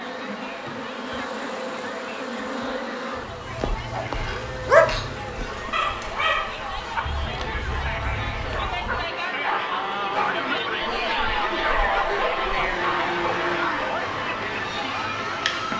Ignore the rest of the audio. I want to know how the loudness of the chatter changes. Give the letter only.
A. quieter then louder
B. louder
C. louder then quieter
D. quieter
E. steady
B.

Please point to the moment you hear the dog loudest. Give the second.
5 s.